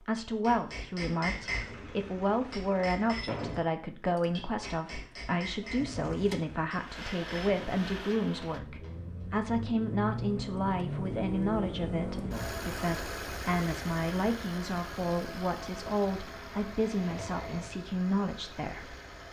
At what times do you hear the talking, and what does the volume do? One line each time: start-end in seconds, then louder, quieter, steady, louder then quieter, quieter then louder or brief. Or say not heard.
0.0-18.9 steady.